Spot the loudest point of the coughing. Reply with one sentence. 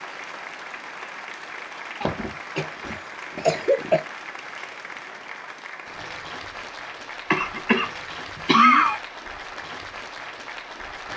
The loudest moment of the coughing is at 9 seconds.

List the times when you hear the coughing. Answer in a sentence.
You can hear the coughing from 2.0 to 4.0 s and from 7.3 to 9.0 s.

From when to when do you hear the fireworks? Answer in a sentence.
You can't hear the fireworks here.